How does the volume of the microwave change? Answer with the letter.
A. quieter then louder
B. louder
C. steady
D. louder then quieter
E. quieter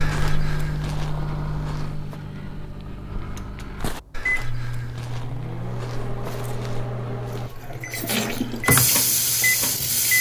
A.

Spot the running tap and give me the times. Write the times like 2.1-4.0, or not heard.
7.5-10.1.